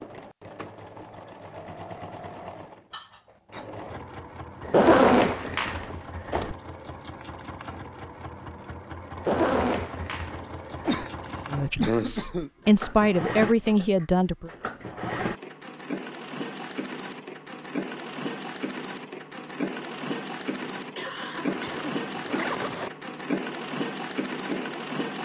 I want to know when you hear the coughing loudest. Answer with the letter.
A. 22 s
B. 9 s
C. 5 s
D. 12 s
D.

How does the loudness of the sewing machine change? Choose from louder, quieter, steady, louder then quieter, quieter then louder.
louder.